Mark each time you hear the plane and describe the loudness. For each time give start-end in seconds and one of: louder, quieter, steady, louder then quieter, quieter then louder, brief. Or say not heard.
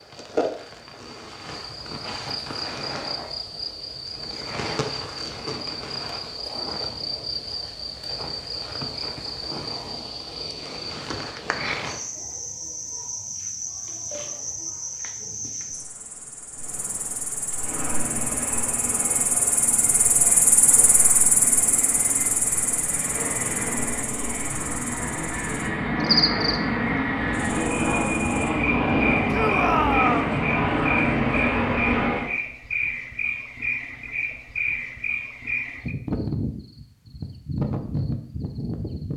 17.5-32.3 louder.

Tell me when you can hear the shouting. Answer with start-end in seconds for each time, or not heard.
29.3-30.4.